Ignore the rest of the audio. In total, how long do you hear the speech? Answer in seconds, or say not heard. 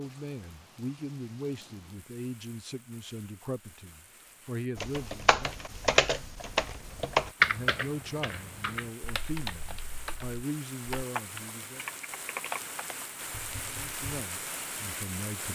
12 s.